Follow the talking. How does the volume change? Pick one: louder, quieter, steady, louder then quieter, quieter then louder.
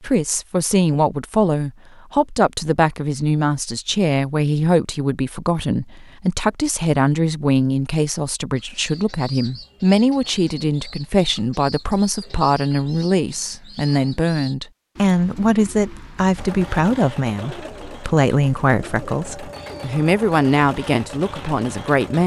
steady.